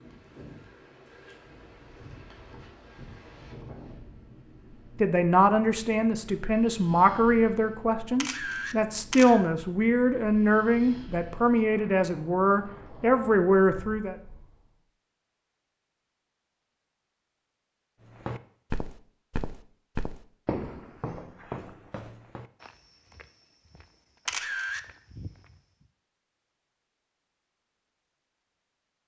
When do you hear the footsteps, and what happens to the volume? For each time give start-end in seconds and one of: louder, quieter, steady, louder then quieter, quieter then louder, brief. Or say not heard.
18.2-25.9 quieter then louder.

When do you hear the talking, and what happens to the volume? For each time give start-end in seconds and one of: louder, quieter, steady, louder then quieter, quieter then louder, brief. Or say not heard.
5.0-14.2 steady.